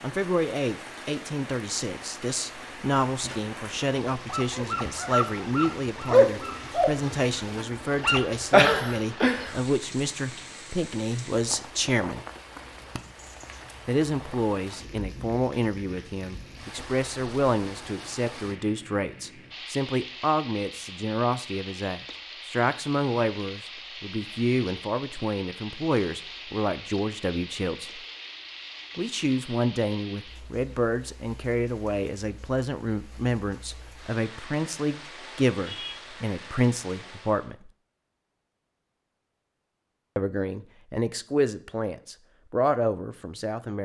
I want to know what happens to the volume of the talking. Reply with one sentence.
The volume of the talking stays about the same.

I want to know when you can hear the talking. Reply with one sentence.
The talking can be heard from 0.0 to 12.2 s, from 13.8 to 28.0 s, from 28.9 to 37.7 s and from 40.1 to 43.7 s.